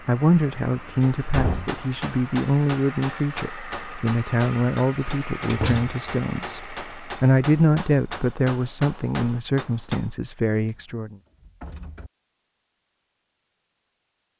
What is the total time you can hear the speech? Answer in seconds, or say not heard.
11 s.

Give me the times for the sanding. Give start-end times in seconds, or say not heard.
not heard.